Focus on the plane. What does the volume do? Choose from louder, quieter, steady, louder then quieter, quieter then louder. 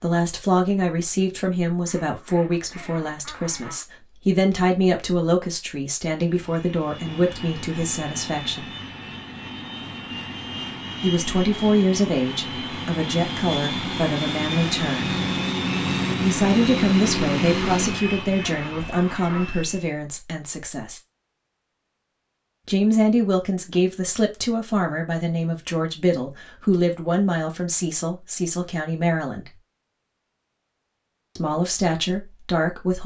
louder.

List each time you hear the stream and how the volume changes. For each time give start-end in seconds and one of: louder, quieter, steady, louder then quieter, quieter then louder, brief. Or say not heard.
not heard.